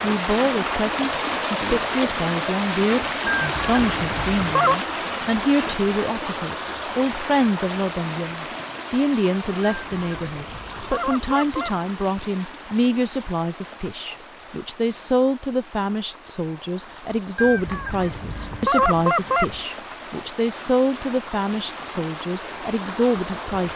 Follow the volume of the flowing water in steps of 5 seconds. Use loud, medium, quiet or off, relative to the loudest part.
loud, medium, quiet, quiet, medium.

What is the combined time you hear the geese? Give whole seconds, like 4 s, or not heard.
6 s.